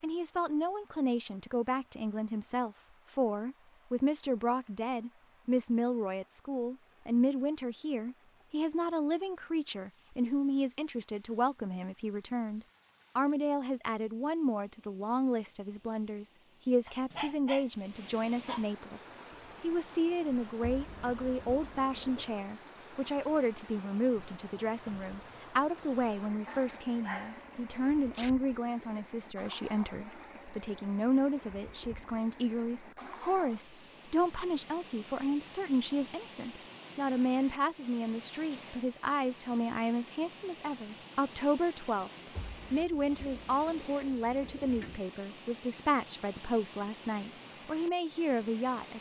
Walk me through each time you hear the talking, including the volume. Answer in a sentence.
You can hear the talking from 0.0 to 42.1 s, at a steady volume; and from 42.7 to 48.9 s, at a steady volume.